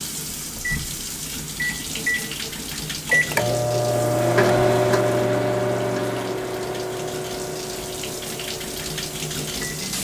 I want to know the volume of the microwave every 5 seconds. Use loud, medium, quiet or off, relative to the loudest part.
loud, medium.